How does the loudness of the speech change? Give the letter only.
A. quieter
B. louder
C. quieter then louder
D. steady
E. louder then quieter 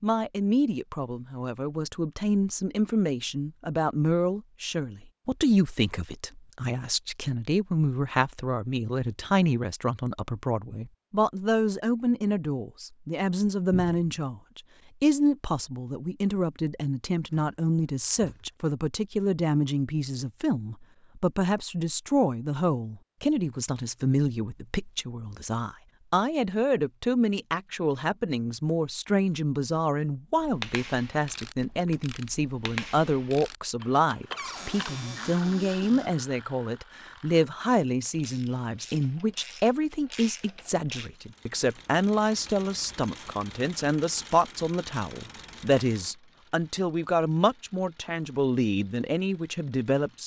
D.